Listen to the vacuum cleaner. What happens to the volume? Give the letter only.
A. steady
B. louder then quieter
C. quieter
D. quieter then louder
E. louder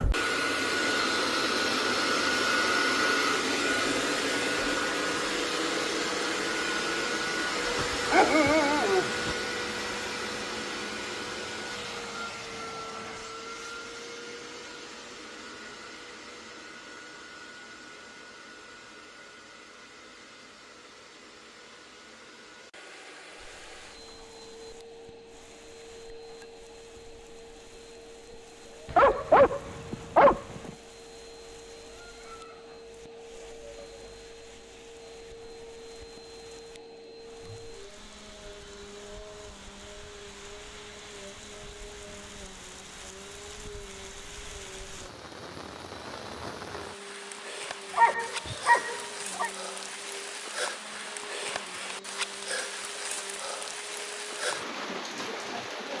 C.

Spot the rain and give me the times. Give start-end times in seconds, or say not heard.
23.4-55.9.